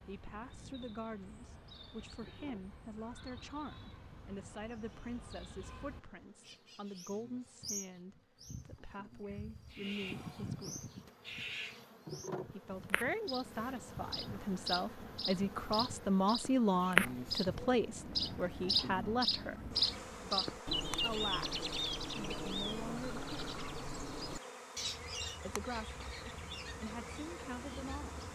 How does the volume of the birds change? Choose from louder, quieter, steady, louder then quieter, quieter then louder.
louder then quieter.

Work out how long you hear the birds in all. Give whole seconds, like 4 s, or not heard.
28 s.